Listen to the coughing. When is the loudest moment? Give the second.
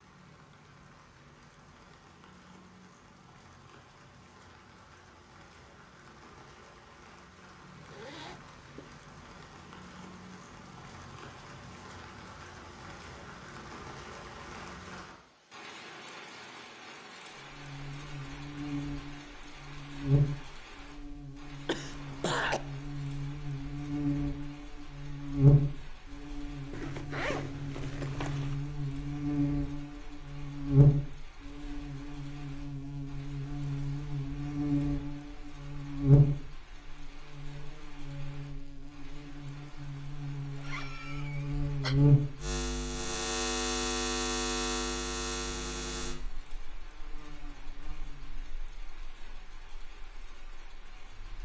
22 s.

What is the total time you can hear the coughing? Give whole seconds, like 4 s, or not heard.
2 s.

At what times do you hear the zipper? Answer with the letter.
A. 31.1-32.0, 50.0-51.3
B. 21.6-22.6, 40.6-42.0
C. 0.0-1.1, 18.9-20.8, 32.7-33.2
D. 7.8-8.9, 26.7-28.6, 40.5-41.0
D.